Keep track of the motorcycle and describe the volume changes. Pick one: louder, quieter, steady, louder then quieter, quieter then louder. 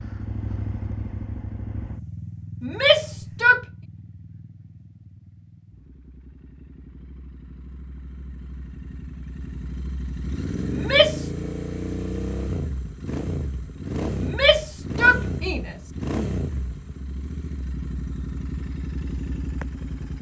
quieter then louder.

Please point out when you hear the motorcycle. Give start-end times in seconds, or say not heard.
0.0-20.1.